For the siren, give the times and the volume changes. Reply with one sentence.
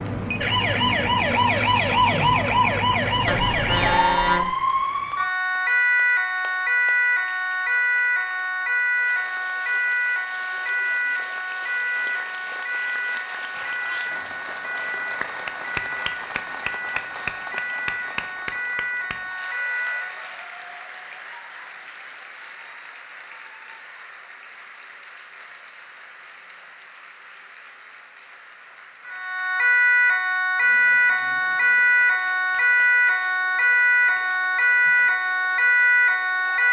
You can hear the siren from 0.0 to 20.4 s, getting quieter; and from 29.1 to 36.6 s, at a steady volume.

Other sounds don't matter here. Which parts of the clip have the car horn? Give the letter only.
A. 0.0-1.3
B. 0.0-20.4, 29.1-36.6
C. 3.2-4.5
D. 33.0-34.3
C.